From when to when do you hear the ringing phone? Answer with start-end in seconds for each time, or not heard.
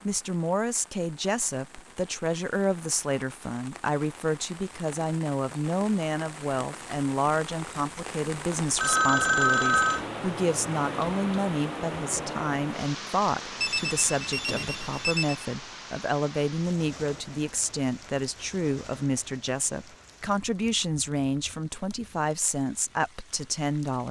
8.8-10.1, 13.6-15.4.